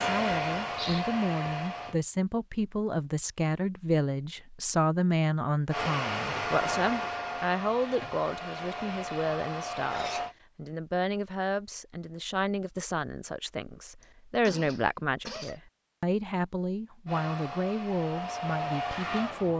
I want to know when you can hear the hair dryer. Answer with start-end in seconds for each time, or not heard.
0.0-1.9, 5.7-10.3, 17.1-19.5.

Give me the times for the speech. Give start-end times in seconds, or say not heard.
0.0-19.5.